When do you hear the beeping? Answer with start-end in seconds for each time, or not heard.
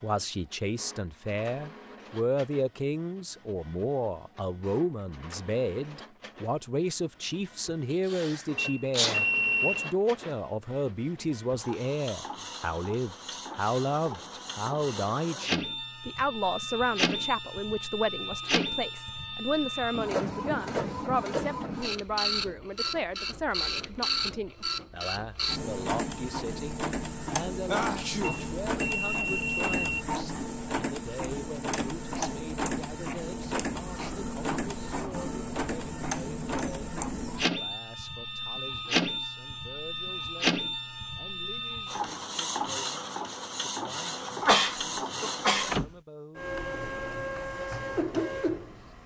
8.6-9.9, 28.2-30.1.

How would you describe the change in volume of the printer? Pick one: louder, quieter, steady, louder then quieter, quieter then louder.
louder.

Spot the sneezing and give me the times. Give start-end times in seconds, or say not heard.
8.1-9.2, 27.6-28.5, 44.4-45.8.